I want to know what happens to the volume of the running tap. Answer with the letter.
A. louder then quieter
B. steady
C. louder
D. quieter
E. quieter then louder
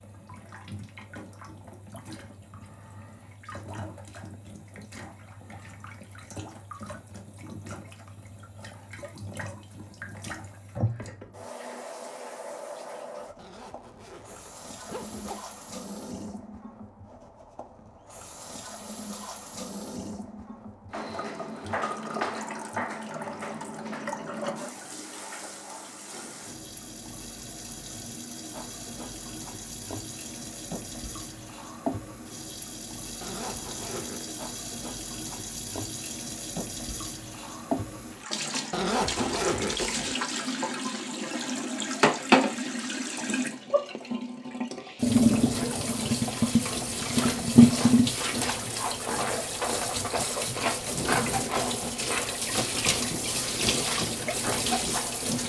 C.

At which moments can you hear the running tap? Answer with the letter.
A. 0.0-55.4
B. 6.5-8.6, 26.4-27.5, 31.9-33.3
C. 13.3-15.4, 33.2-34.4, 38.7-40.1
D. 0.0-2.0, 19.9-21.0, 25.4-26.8
A.